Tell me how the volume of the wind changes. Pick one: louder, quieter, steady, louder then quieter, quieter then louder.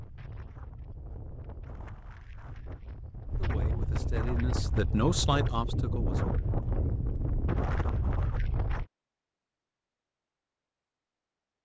louder.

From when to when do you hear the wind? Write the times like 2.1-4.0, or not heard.
0.0-8.8.